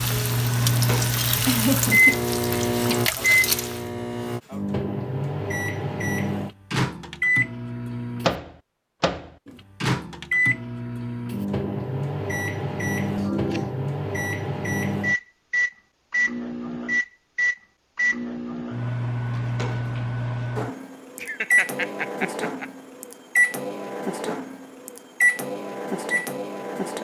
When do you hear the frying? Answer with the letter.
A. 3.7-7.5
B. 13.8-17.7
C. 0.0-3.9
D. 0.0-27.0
C.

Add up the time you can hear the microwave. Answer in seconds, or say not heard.
27 s.